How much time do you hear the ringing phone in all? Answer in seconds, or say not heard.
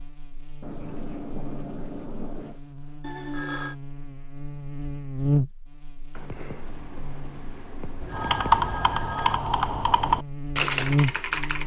2 s.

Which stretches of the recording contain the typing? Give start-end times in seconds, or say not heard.
8.1-11.6.